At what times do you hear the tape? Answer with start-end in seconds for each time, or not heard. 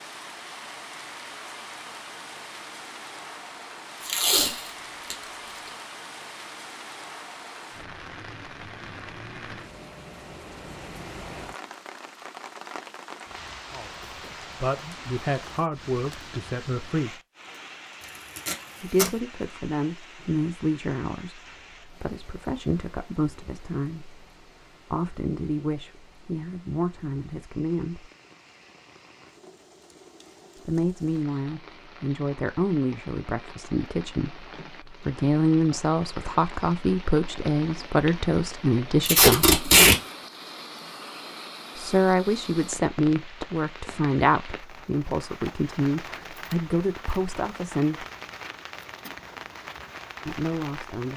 4.0-5.2, 18.4-19.1, 39.0-40.0.